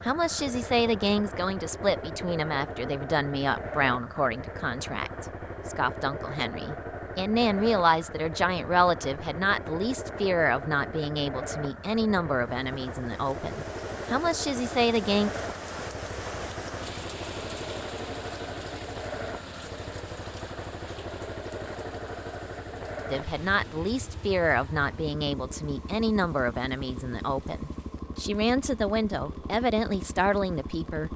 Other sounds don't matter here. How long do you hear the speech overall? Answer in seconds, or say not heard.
23 s.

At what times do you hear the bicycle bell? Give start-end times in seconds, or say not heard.
not heard.